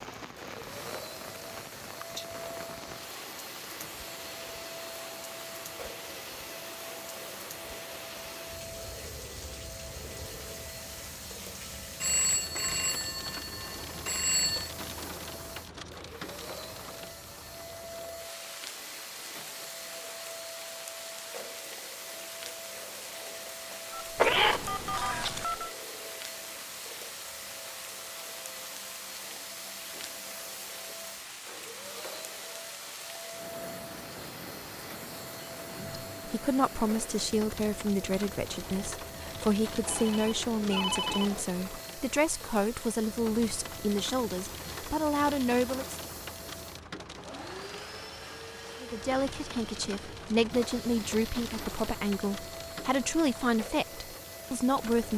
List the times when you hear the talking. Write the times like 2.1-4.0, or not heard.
35.7-46.0, 48.8-55.1.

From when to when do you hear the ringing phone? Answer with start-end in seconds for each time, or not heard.
12.0-14.7, 23.9-25.7, 39.9-41.5.